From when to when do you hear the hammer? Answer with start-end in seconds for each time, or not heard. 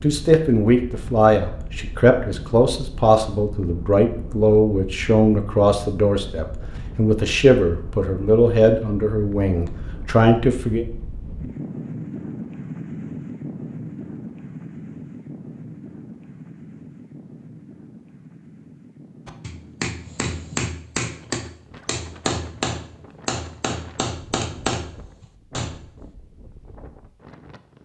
19.2-25.9.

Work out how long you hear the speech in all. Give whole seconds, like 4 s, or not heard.
11 s.